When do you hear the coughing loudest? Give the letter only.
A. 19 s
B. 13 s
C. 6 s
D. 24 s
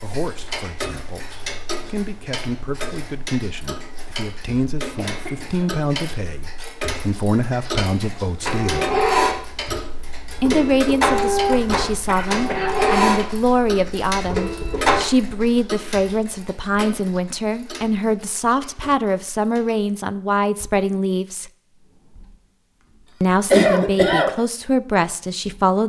D.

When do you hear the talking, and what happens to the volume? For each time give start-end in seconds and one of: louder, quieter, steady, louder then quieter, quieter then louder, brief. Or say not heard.
0.0-8.9 louder
10.4-21.5 steady
23.2-25.8 brief.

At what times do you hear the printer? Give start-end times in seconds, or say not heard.
8.4-15.0.